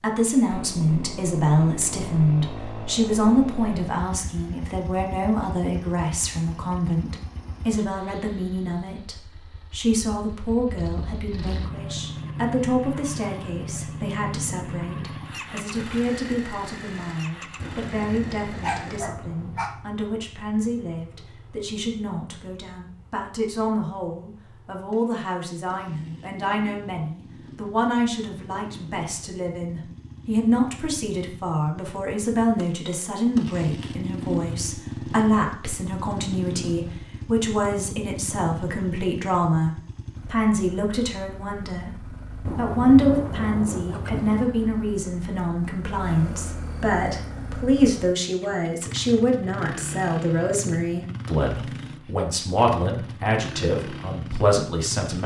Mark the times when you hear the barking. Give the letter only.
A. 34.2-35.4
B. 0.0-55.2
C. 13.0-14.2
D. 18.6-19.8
D.